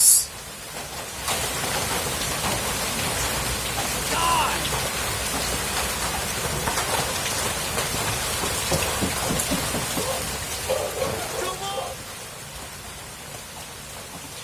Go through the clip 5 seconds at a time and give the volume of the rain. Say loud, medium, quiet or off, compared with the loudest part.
loud, loud, medium.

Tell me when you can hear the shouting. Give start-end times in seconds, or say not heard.
4.1-4.7, 11.0-11.9.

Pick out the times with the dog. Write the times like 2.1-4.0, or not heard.
9.9-11.9.